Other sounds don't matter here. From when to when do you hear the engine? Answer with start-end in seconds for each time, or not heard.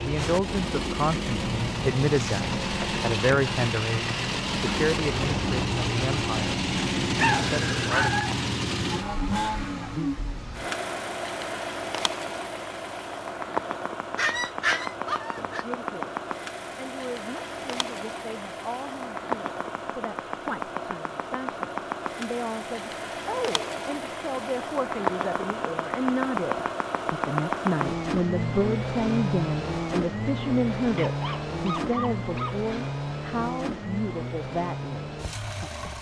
0.0-35.9.